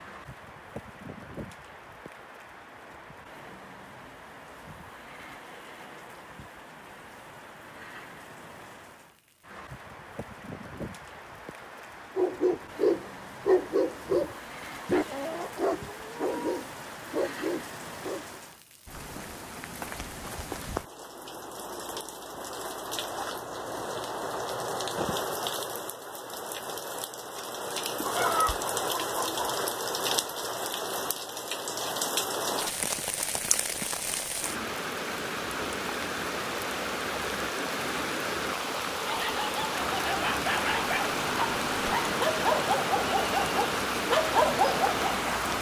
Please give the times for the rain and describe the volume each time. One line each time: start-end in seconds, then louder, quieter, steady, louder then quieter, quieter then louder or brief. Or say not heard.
0.0-45.5 louder.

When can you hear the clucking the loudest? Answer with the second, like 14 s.
28 s.